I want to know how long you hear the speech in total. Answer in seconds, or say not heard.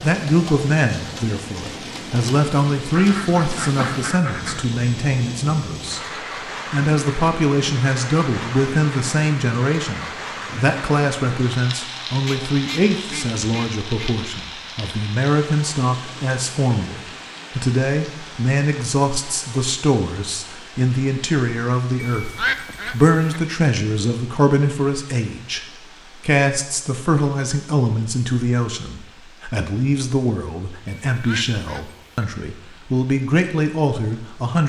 34 s.